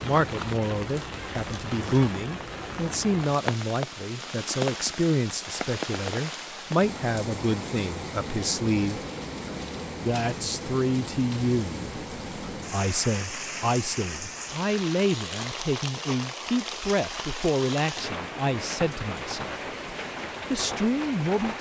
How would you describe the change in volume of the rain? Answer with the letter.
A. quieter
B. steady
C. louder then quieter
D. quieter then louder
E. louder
B.